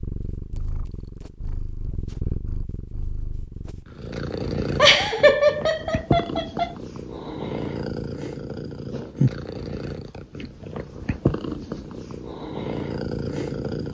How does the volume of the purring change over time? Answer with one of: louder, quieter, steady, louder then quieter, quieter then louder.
louder.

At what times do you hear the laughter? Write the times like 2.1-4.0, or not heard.
4.8-6.7.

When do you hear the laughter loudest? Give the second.
5 s.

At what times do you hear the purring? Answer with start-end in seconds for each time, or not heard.
0.0-13.9.